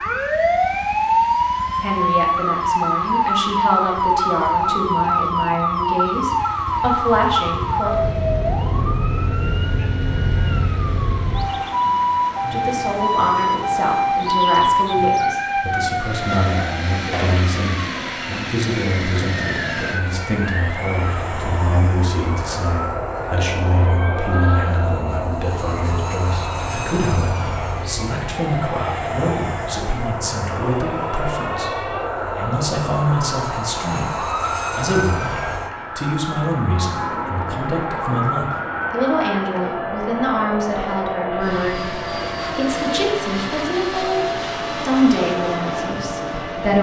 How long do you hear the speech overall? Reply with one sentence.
The speech can be heard for 40 seconds in total.